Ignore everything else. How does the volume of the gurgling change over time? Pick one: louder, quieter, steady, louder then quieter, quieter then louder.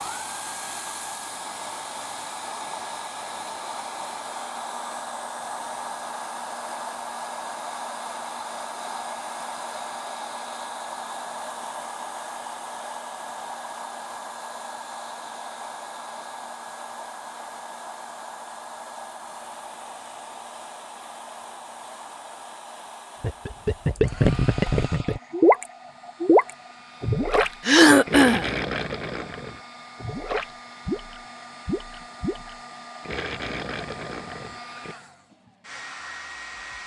quieter.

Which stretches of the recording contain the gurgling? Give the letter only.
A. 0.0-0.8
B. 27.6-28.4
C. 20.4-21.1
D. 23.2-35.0
D.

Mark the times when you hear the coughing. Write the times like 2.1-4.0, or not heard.
27.6-28.4.